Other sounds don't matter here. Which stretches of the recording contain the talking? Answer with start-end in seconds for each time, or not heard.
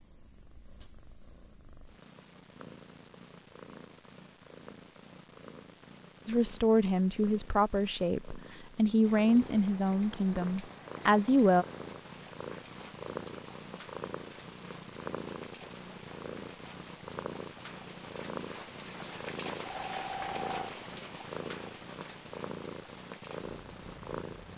6.2-11.7.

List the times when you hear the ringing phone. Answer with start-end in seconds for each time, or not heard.
19.6-20.8.